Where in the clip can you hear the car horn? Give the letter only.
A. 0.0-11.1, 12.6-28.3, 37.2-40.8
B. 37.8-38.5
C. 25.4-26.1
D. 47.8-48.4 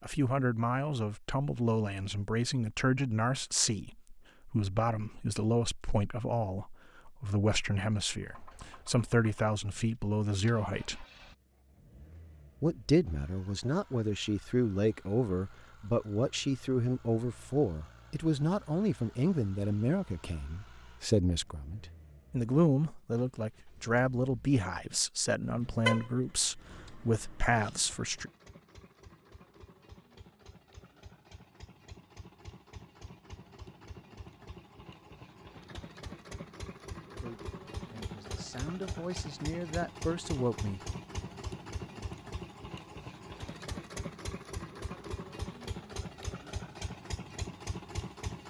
C.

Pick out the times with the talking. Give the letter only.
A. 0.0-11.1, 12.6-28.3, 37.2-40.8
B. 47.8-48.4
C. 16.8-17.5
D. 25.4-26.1
A.